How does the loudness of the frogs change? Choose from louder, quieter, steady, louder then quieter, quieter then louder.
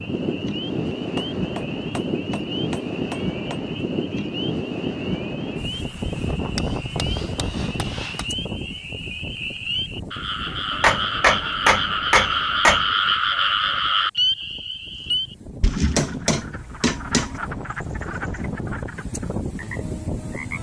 louder then quieter.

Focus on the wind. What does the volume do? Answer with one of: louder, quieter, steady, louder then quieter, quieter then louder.
quieter then louder.